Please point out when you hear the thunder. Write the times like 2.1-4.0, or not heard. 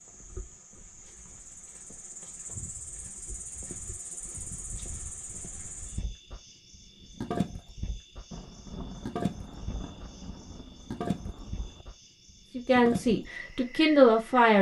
8.3-11.8.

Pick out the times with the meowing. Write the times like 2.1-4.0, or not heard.
not heard.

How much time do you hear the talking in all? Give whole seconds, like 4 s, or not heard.
2 s.